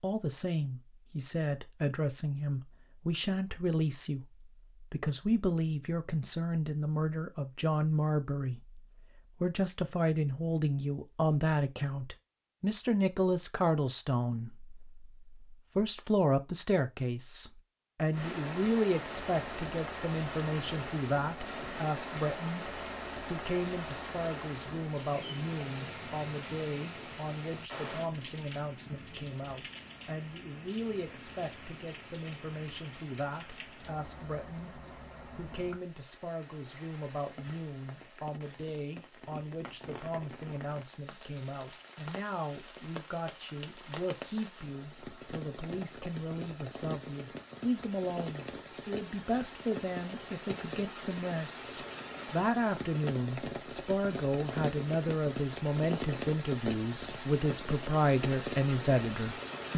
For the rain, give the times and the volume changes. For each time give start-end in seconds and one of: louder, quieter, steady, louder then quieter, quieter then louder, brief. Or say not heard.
18.1-59.7 quieter then louder.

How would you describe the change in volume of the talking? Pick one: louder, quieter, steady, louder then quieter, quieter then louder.
quieter then louder.